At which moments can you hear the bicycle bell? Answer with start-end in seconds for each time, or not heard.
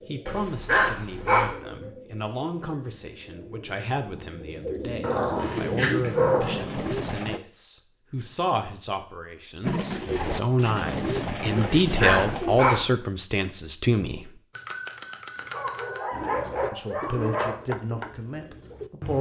14.6-16.1.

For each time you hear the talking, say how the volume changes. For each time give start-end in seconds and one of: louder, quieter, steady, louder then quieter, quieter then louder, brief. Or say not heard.
0.1-14.4 louder
16.7-19.1 brief.